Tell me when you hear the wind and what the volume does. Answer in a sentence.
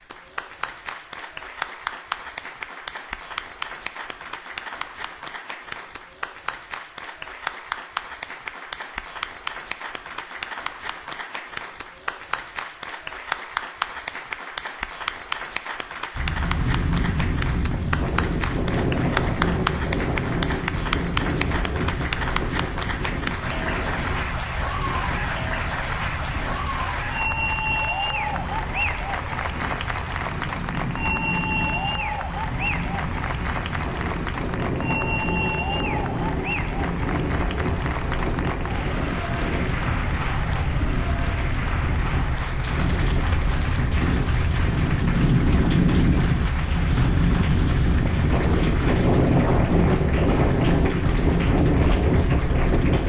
The wind can be heard from 16.1 to 53.0 s, getting quieter then louder.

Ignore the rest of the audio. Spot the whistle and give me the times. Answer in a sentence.
You can't hear the whistle here.